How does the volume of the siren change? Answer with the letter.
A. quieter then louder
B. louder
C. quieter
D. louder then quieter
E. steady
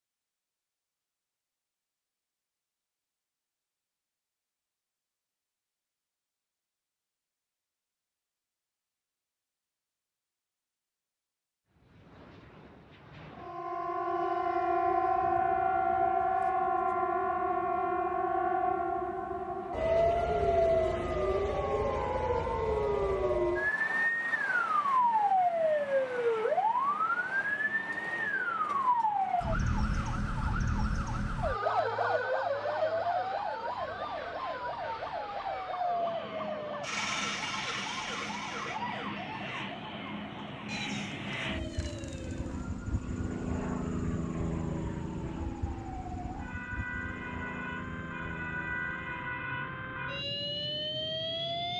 C.